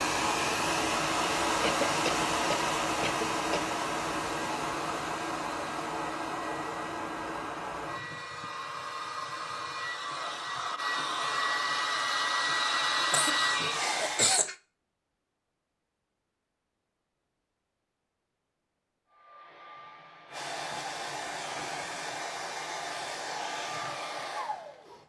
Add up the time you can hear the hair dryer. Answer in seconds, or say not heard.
20 s.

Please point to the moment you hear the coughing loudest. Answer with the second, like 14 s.
14 s.